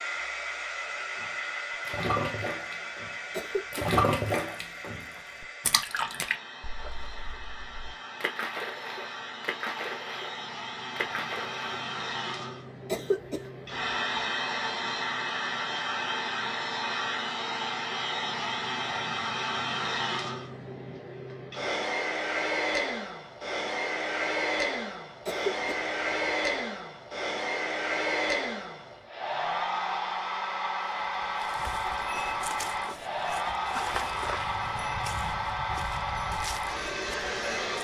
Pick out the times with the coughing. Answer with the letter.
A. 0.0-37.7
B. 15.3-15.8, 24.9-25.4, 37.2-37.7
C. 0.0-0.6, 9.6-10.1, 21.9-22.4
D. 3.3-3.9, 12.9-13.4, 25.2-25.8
D.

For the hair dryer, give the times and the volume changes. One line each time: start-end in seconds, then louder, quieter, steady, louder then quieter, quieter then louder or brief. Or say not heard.
0.0-37.7 louder.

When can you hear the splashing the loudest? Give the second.
4 s.